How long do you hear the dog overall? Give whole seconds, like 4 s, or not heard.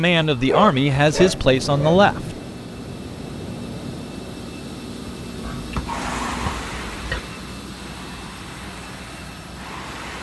4 s.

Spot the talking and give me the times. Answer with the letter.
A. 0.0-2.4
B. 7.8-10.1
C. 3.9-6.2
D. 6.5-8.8
A.